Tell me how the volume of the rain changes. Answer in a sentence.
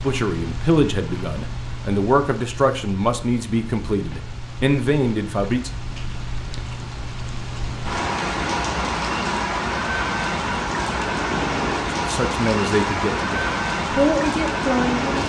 The loudness of the rain goes up.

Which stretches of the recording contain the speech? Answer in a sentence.
The speech can be heard from 0.0 to 5.7 s and from 12.0 to 15.2 s.